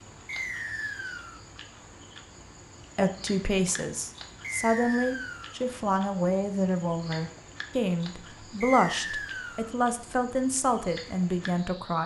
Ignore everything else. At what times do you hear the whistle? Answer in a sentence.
The whistle can be heard from 0.2 to 1.4 s, from 4.4 to 5.5 s and from 8.6 to 9.7 s.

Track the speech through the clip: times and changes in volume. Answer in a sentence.
You can hear the speech from 3.0 to 12.0 s, at a steady volume.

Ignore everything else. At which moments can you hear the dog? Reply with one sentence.
The dog can't be heard in this clip.